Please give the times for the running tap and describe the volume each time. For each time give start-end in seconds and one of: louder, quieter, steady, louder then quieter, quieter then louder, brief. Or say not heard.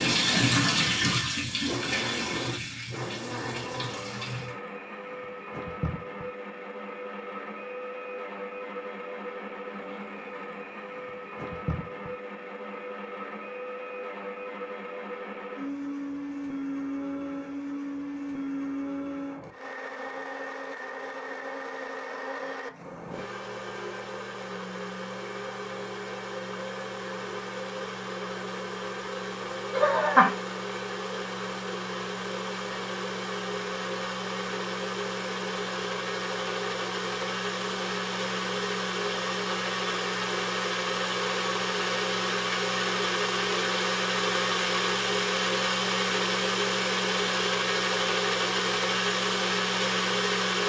0.0-4.6 quieter.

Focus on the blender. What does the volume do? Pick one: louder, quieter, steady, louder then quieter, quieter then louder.
louder.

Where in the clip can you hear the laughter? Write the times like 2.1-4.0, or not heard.
29.7-30.4.